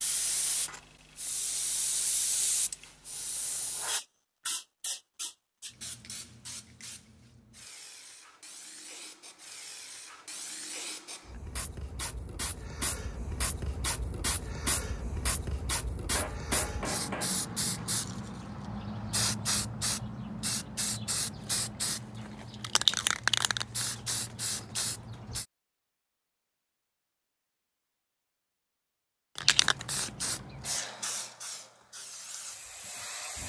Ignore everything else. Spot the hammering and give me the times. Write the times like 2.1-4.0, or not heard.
16.1-17.6.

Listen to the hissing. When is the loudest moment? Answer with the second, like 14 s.
23 s.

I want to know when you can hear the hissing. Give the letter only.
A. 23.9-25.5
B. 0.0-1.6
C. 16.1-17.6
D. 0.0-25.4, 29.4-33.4
D.